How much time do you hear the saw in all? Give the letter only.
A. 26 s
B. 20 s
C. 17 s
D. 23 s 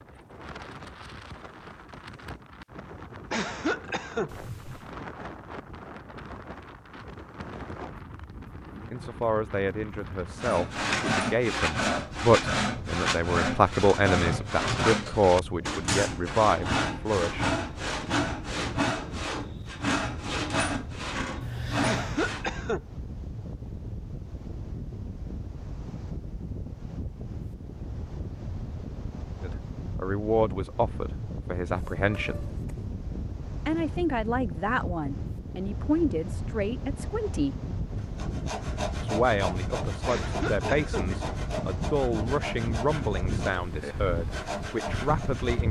B.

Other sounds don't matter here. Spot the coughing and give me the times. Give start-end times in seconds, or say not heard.
3.3-4.3, 21.8-22.8, 40.0-41.0.